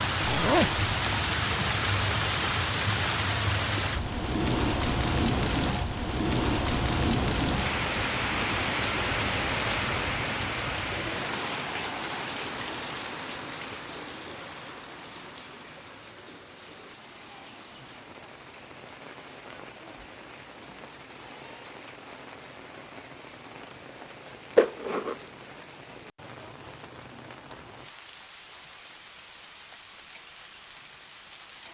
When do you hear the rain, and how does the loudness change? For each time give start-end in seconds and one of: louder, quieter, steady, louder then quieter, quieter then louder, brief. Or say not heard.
0.0-31.7 quieter.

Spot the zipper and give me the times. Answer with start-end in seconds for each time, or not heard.
0.2-0.8, 24.6-25.1.